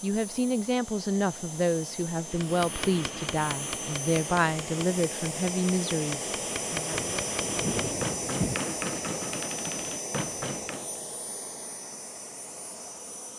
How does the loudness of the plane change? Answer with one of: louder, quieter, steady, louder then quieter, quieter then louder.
louder then quieter.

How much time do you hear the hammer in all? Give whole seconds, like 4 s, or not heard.
9 s.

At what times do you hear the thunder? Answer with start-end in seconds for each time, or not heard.
6.9-8.6.